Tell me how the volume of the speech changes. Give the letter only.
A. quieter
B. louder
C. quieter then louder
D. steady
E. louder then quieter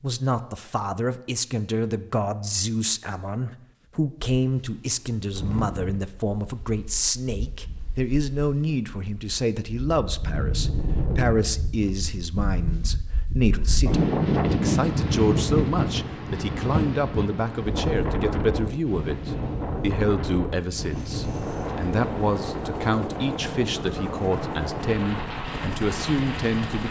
D.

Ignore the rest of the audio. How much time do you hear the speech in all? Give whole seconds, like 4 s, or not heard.
27 s.